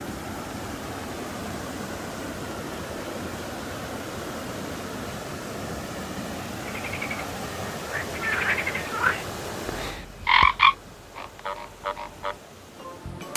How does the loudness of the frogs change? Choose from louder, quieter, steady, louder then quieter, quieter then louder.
louder then quieter.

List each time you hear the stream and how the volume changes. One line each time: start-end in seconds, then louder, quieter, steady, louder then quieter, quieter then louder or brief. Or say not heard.
0.0-13.3 quieter.